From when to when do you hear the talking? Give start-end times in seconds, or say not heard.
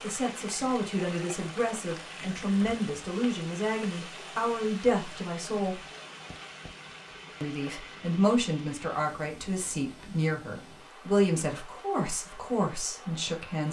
0.0-5.8, 7.4-13.6.